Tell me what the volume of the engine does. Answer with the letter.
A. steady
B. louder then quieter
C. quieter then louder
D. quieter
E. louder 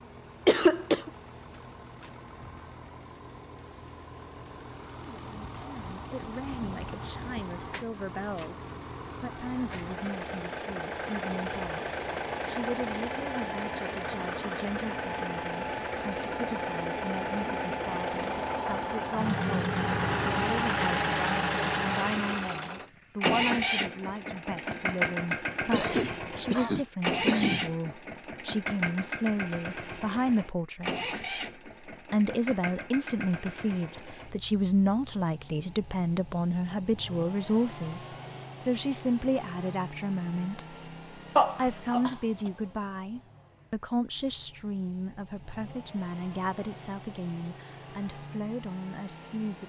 B.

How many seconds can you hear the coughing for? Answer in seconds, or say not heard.
4 s.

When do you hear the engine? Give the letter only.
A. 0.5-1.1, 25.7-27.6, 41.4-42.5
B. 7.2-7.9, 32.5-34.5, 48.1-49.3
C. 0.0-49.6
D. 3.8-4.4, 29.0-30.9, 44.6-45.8
C.